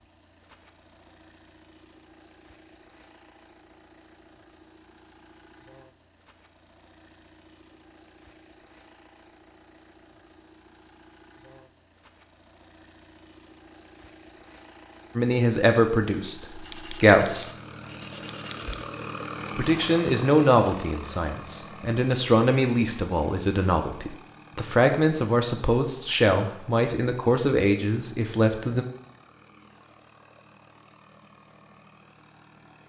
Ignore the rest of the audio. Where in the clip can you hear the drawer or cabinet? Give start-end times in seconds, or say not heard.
not heard.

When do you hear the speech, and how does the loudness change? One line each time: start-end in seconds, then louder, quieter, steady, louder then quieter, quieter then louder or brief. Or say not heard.
15.2-17.5 brief
19.6-28.9 steady.